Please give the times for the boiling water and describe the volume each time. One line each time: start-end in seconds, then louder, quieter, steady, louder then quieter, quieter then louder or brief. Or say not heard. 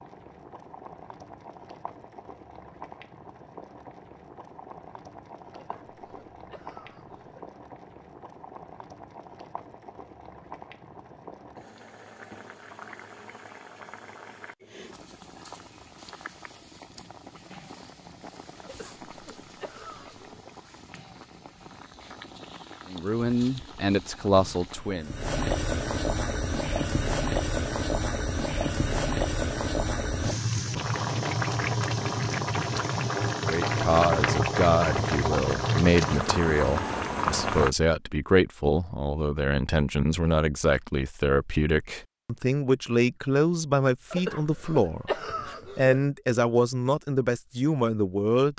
0.0-37.7 louder.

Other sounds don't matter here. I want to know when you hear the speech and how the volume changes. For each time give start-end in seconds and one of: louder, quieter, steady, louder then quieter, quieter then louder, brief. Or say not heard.
22.9-25.1 brief
33.4-48.5 steady.